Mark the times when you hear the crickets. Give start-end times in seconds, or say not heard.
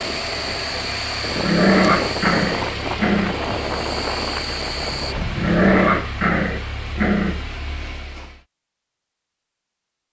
0.0-5.2.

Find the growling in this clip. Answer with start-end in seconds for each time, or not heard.
1.4-3.4, 5.3-7.5.